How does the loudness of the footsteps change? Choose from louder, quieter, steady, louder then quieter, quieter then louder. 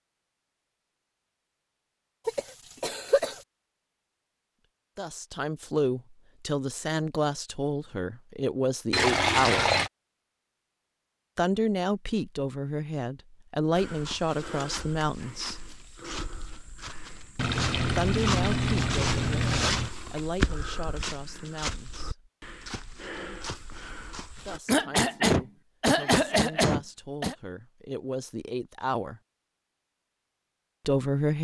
louder then quieter.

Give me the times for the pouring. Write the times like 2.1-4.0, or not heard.
8.9-9.9, 17.4-19.9.